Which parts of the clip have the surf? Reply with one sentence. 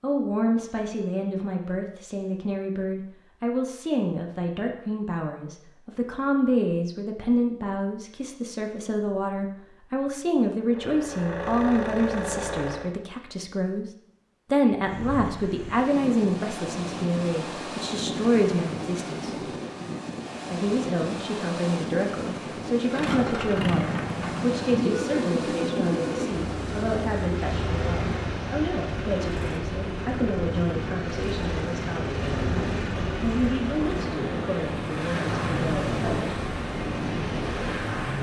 You can hear the surf from 14.8 to 38.1 s.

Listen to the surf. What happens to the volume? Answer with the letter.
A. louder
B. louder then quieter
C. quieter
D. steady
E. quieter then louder
D.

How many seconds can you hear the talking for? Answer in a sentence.
The talking can be heard for 35 seconds in total.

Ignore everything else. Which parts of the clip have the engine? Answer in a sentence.
You can hear the engine from 10.6 to 12.9 s and from 22.9 to 38.1 s.